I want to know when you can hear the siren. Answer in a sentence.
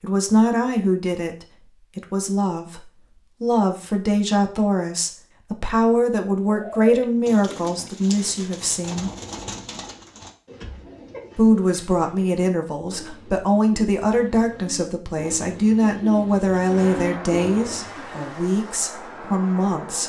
The siren can't be heard in this clip.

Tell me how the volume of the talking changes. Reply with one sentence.
The volume of the talking stays about the same.